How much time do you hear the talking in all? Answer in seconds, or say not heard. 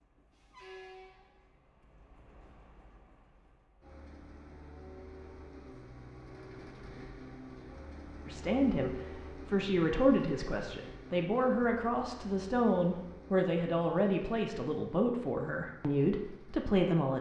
9 s.